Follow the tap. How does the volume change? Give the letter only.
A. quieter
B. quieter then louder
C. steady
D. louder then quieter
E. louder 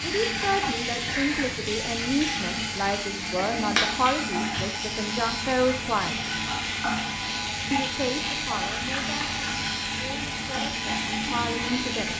C.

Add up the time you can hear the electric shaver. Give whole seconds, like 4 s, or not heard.
12 s.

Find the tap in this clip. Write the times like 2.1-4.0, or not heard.
0.0-12.1.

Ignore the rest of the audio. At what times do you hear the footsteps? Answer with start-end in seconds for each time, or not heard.
not heard.